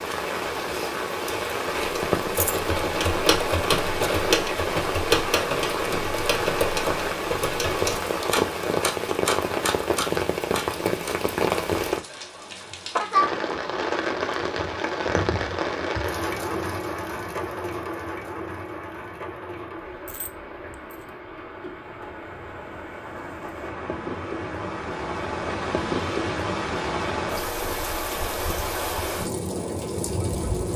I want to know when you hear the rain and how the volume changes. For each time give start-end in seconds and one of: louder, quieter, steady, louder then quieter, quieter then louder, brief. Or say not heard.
0.0-30.7 quieter then louder.